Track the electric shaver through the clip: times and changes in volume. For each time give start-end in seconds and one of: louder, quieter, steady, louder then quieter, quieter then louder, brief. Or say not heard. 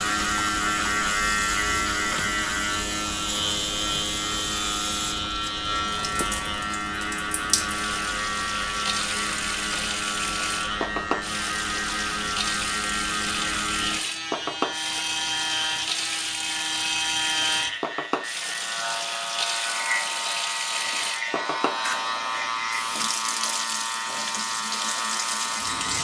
0.0-25.9 steady.